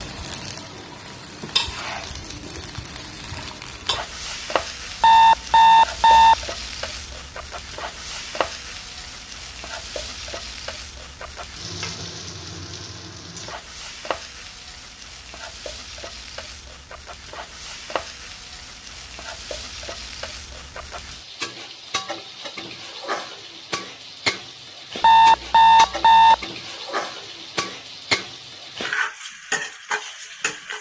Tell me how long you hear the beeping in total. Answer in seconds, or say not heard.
3 s.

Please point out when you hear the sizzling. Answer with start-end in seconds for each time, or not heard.
0.0-30.7.